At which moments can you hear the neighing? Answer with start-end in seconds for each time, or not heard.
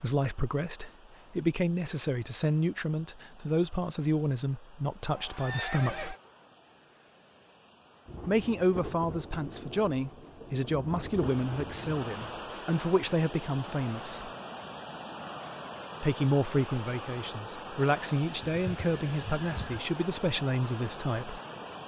5.1-6.2, 18.4-19.8.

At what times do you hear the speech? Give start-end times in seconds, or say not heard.
0.0-6.2, 8.2-14.3, 16.0-21.4.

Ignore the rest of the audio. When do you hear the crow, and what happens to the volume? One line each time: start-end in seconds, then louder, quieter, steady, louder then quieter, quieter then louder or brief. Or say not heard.
not heard.